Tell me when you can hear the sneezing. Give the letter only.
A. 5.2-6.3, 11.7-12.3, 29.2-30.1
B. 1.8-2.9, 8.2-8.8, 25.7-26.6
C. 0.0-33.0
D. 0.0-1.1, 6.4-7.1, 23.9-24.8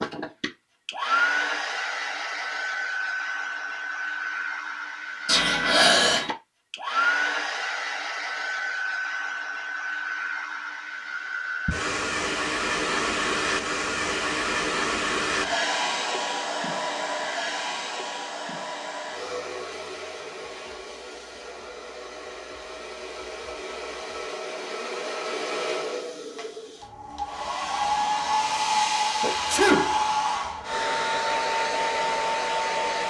A.